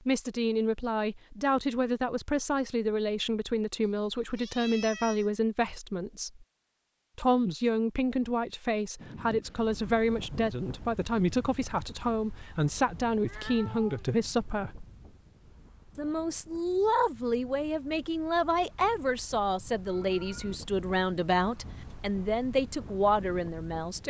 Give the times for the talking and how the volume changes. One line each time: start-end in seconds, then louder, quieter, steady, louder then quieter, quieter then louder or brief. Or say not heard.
0.1-6.5 steady
7.2-14.8 steady
15.9-24.0 steady.